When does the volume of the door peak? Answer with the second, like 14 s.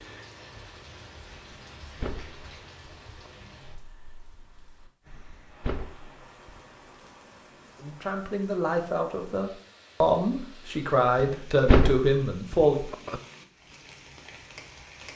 12 s.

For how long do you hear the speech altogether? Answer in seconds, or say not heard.
5 s.